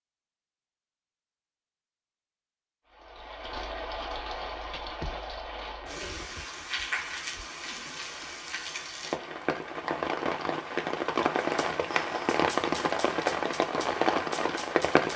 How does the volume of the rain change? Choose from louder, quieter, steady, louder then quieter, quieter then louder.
louder.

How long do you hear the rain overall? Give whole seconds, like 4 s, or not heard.
12 s.